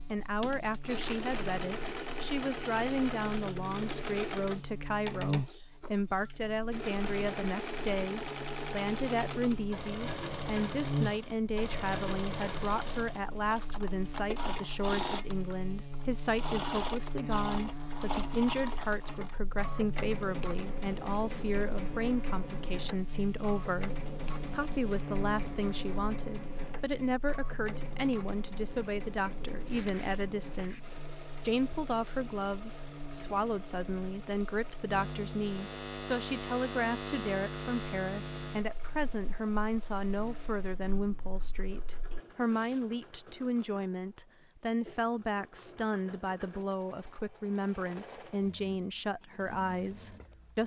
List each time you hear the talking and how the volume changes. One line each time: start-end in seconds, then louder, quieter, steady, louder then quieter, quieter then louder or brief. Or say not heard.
0.1-50.6 steady.